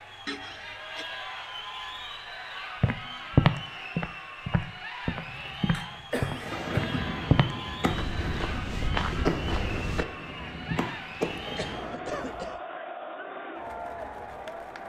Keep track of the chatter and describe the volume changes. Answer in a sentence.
The volume of the chatter stays about the same.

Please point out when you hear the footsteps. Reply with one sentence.
You can hear the footsteps from 2.8 to 10.1 s.